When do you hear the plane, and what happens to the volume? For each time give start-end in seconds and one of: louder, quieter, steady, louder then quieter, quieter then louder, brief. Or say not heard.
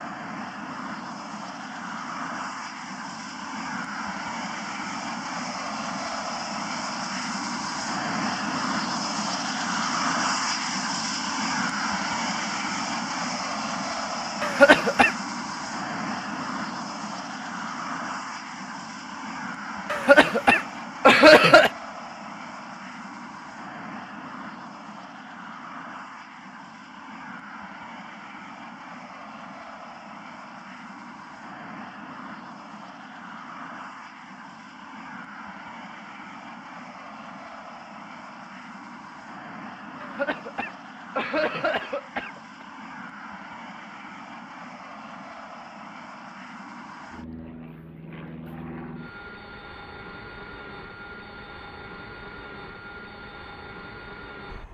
0.0-54.6 quieter.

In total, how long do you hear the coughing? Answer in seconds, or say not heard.
5 s.